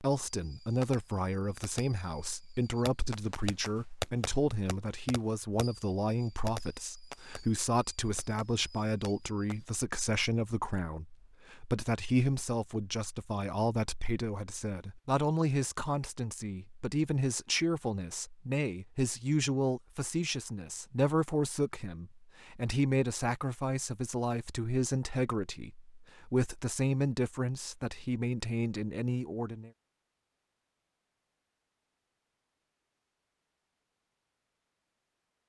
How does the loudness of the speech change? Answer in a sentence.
The loudness of the speech stays about the same.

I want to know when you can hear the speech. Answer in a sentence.
The speech can be heard from 0.0 to 29.7 s.